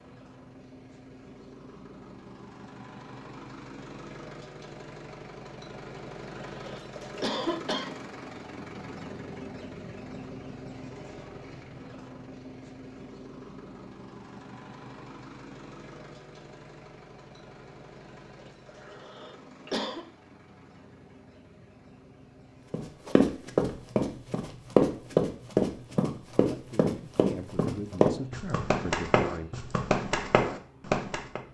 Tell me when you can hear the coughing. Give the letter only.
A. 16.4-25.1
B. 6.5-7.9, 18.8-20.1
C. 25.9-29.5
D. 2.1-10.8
B.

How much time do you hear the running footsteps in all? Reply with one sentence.
The running footsteps can be heard for 9 seconds in total.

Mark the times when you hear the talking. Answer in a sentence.
You can hear the talking from 25.9 to 29.5 s.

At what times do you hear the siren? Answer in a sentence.
You can't hear the siren here.